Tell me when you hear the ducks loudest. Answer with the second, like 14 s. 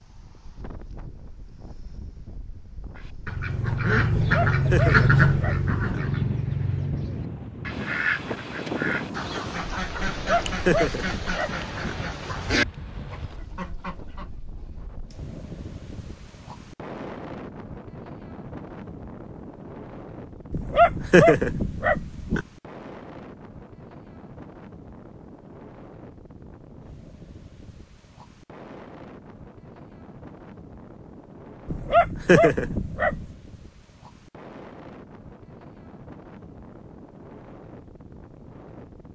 5 s.